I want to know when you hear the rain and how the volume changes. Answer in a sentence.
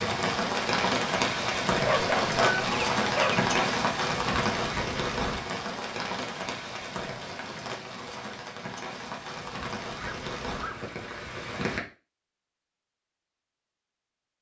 You can hear the rain from 0.0 to 11.8 s, getting quieter.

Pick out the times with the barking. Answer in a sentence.
You can hear the barking from 1.9 to 3.5 s and from 10.0 to 10.8 s.